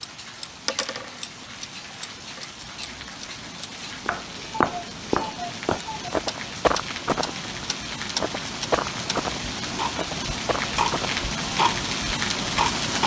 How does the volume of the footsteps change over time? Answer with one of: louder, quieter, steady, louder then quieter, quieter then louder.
quieter.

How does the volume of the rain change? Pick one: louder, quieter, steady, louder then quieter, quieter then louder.
louder.